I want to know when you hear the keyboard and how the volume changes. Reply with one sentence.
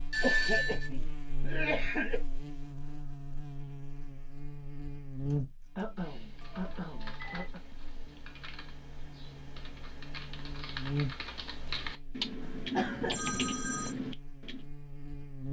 You can hear the keyboard from 5.1 to 14.6 s, getting louder.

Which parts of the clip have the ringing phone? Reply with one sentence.
The ringing phone can be heard from 0.1 to 0.9 s, from 6.4 to 7.5 s and from 12.4 to 13.9 s.